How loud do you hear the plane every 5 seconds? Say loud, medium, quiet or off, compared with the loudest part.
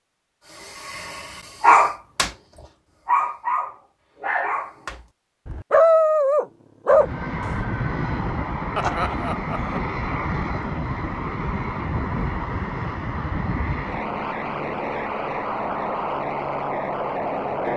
off, loud, loud, loud.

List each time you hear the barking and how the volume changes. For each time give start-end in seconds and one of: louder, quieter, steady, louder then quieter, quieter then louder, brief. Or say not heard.
0.5-2.4 brief
3.0-7.6 quieter then louder.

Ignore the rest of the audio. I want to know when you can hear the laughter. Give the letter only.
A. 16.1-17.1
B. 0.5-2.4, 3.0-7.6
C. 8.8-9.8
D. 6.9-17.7
C.